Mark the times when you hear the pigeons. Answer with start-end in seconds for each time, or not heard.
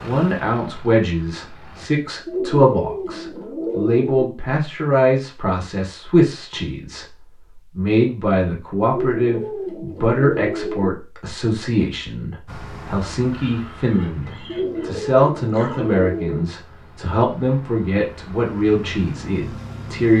2.2-4.1, 8.8-10.9, 14.4-16.4.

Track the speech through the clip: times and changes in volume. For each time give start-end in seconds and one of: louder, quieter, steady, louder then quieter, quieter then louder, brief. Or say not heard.
0.0-20.1 steady.